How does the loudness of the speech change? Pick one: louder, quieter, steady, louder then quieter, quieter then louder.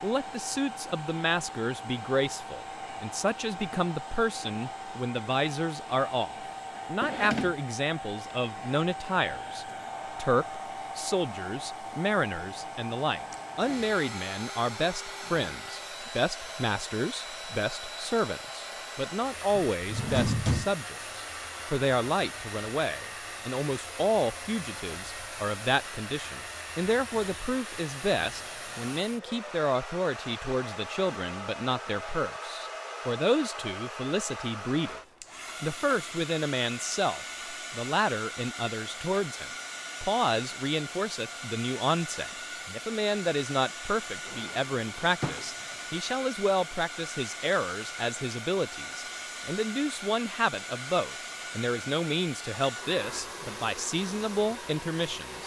steady.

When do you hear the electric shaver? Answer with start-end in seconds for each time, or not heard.
not heard.